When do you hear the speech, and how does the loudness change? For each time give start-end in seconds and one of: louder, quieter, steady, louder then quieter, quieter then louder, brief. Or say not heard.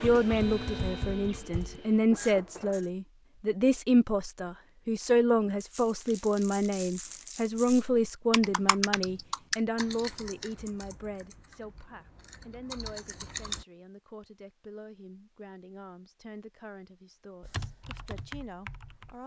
0.0-19.2 quieter.